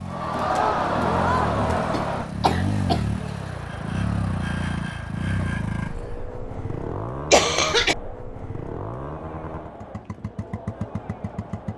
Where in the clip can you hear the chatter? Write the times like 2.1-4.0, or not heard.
0.0-11.7.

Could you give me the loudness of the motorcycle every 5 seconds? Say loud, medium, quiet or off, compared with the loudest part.
loud, loud, medium.